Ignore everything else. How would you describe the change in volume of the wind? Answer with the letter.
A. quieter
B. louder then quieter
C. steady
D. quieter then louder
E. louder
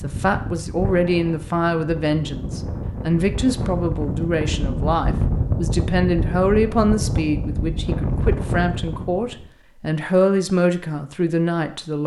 E.